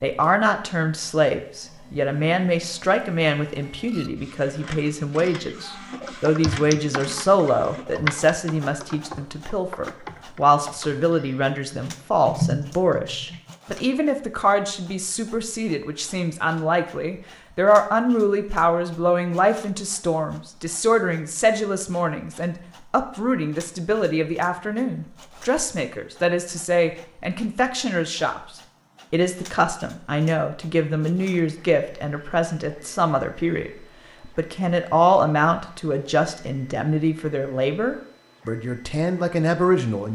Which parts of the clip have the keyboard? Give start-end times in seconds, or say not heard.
5.2-13.6.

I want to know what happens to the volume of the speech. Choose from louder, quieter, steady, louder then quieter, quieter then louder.
steady.